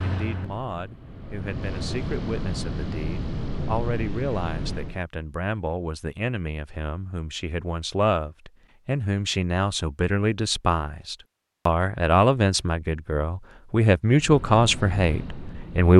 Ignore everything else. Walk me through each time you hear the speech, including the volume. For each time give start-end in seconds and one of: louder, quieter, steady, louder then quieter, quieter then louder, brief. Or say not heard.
0.0-15.9 louder.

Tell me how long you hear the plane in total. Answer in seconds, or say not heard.
7 s.